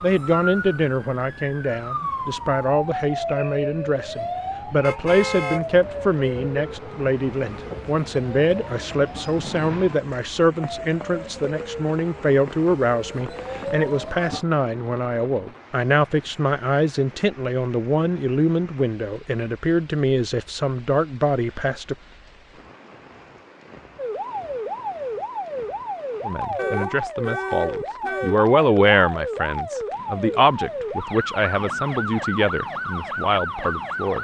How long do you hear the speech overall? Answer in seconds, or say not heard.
30 s.